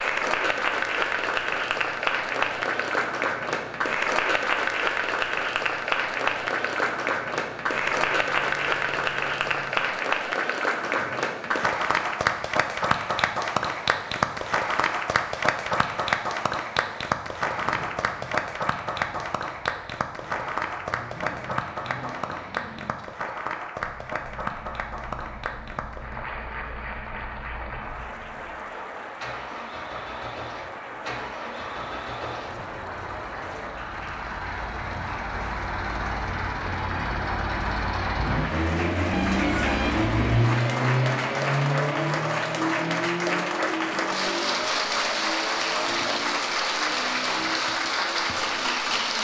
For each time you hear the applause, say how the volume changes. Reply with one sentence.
You can hear the applause from 0.0 to 49.1 s, getting quieter then louder.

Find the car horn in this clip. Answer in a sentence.
The car horn can be heard from 39.1 to 40.5 s.